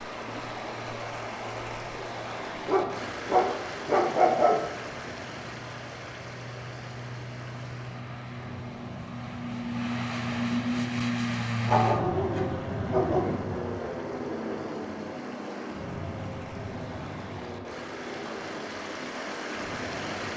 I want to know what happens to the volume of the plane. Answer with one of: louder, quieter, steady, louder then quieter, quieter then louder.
louder then quieter.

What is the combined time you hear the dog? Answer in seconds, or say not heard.
4 s.